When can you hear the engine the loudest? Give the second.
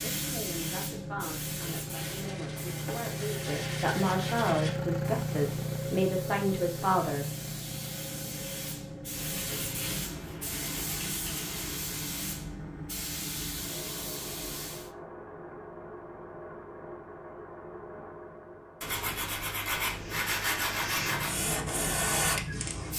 5 s.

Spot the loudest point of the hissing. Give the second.
22 s.